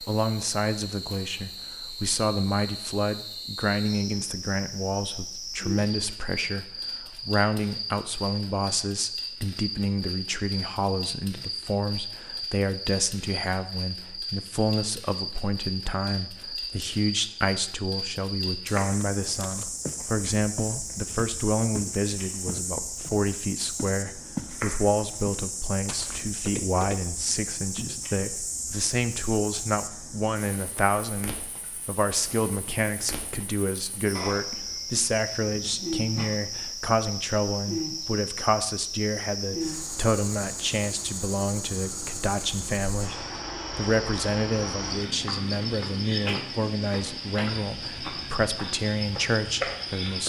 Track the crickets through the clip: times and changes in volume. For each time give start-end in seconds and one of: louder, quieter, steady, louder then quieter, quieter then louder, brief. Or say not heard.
0.0-50.2 steady.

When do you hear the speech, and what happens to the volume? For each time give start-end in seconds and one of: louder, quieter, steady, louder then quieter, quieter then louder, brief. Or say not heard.
0.0-50.2 steady.